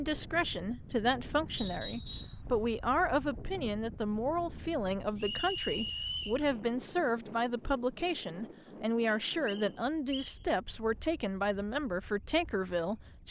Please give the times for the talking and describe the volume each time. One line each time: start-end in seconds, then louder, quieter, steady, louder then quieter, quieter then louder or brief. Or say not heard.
0.0-13.2 steady.